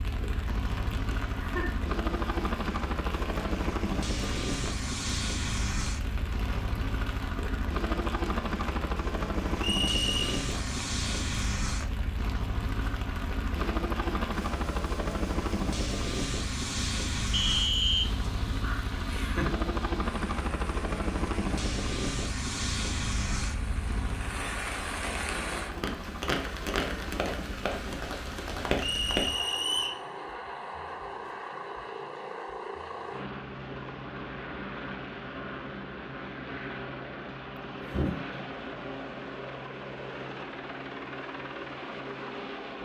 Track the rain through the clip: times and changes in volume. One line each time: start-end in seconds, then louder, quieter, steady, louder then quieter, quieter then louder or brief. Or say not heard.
0.0-29.5 louder.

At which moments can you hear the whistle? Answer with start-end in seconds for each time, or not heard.
9.6-10.4, 17.3-18.1, 28.8-30.0.